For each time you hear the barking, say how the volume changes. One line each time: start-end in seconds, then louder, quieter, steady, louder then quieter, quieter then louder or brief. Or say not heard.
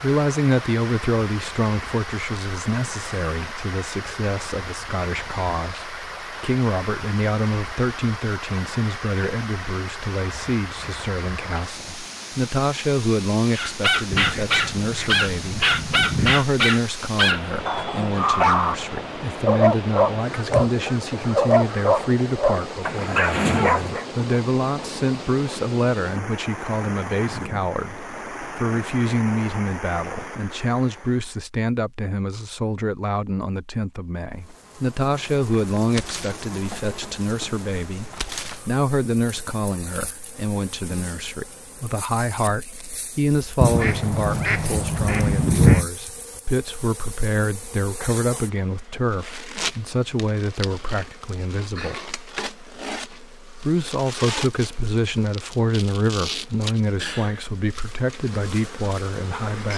13.5-24.1 steady.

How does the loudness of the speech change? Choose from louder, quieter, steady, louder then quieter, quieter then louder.
steady.